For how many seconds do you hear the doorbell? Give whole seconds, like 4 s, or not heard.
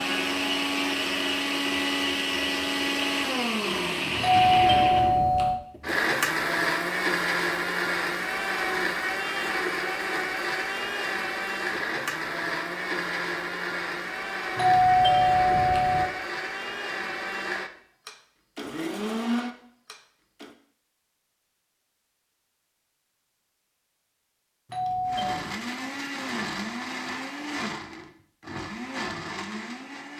4 s.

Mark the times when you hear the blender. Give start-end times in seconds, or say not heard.
0.0-20.6, 25.1-30.1.